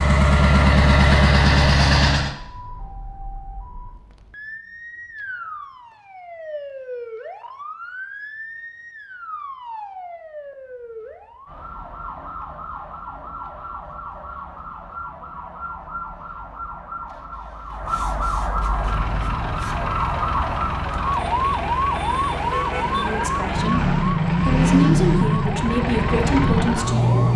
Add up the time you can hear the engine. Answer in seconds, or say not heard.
11 s.